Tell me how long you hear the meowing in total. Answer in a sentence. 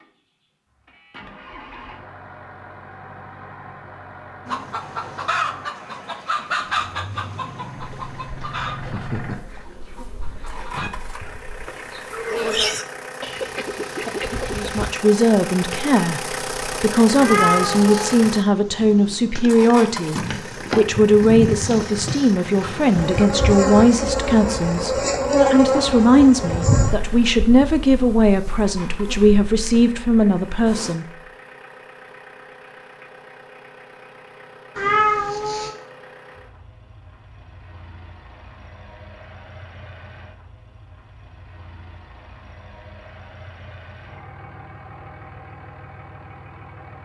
The meowing can be heard for 2 seconds in total.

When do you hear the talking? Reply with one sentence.
The talking can be heard from 14.6 to 31.1 s.